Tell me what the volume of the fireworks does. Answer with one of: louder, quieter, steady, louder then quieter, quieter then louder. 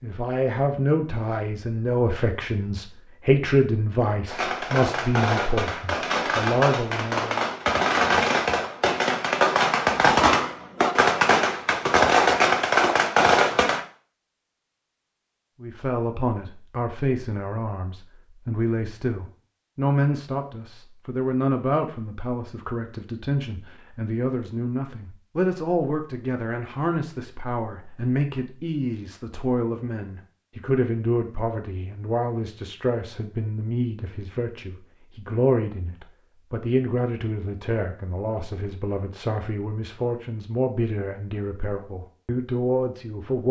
louder.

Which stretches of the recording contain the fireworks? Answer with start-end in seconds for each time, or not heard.
4.2-13.8.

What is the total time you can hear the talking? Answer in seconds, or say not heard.
35 s.